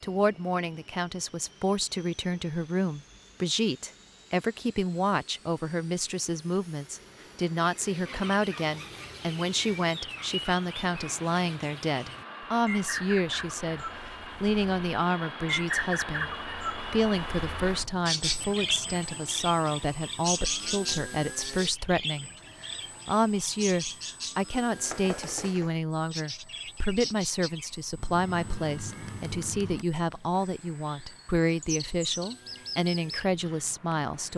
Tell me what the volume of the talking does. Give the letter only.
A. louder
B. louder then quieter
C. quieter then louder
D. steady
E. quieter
D.